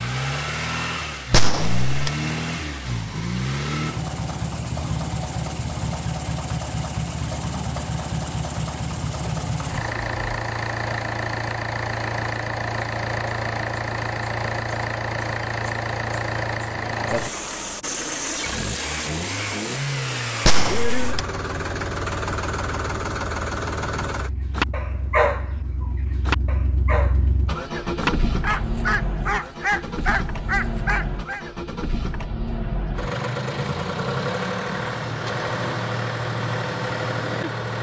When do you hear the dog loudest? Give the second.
25 s.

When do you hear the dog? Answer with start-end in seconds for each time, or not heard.
24.6-31.4.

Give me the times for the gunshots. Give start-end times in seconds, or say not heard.
1.3-2.1, 20.4-21.2.